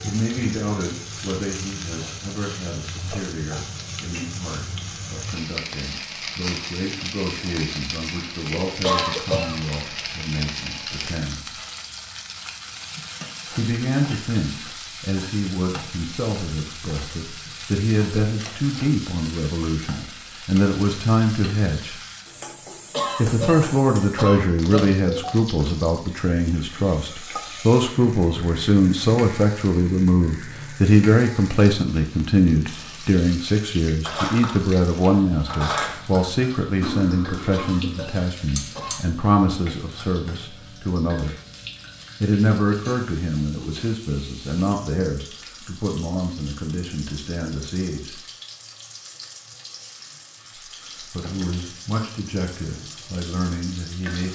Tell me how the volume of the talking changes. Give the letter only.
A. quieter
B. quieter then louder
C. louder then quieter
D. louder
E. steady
C.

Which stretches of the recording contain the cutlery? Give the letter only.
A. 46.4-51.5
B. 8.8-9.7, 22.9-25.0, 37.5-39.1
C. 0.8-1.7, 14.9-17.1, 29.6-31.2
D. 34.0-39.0
D.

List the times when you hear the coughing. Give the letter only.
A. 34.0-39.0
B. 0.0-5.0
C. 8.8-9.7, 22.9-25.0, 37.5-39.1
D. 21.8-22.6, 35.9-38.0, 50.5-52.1
C.